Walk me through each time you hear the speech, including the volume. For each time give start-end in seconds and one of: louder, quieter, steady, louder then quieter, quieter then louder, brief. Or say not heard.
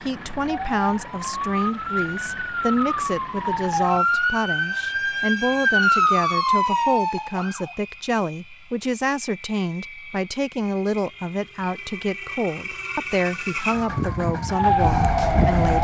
0.1-15.7 steady.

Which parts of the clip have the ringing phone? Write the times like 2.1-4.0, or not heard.
not heard.